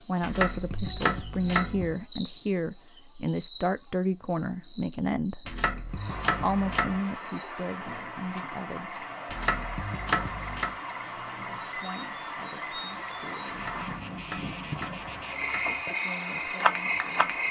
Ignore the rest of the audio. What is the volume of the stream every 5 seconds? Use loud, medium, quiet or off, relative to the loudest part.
off, loud, loud, loud.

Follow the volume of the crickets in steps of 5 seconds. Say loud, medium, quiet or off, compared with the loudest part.
loud, quiet, medium, loud.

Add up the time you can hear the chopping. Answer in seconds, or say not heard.
7 s.